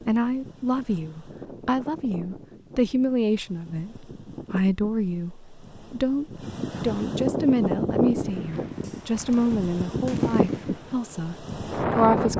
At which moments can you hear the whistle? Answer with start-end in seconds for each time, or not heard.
not heard.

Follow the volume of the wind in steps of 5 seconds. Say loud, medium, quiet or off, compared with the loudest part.
quiet, loud, loud.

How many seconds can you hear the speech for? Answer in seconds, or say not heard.
12 s.